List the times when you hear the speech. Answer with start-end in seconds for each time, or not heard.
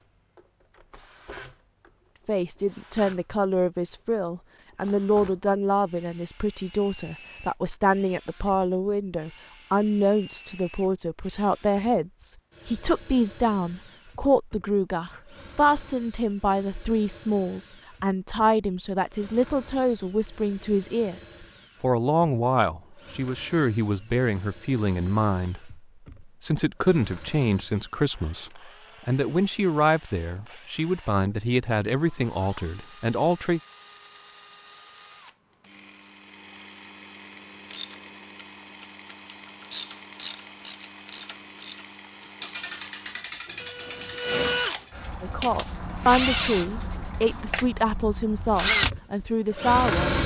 2.2-33.6, 45.2-50.2.